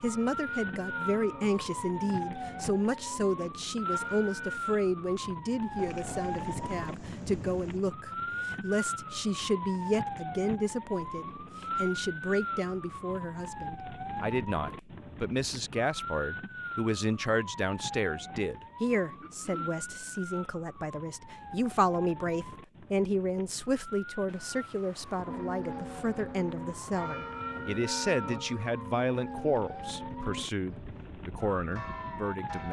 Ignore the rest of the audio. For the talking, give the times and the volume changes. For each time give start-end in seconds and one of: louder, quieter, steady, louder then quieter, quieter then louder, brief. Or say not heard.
0.0-32.6 steady.